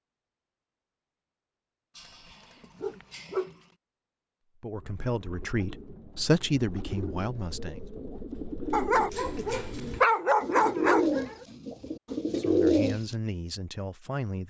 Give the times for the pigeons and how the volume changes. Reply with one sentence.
The pigeons can be heard from 4.8 to 13.2 s, getting louder.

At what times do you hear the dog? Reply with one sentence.
You can hear the dog from 1.9 to 3.5 s and from 8.7 to 11.4 s.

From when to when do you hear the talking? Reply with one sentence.
You can hear the talking from 4.6 to 7.8 s and from 12.2 to 14.4 s.